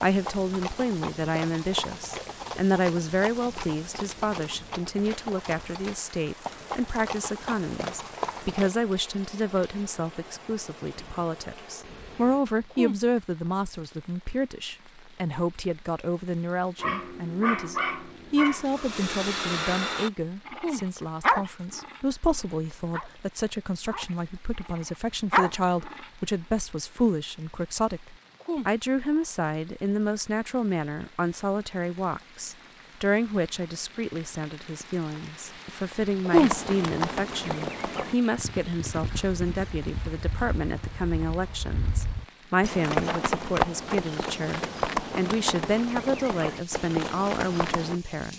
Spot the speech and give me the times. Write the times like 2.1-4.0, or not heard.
0.0-48.3.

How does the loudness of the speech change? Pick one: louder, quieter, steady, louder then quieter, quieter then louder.
steady.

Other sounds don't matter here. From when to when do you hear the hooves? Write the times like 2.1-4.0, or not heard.
0.1-8.8, 36.3-48.0.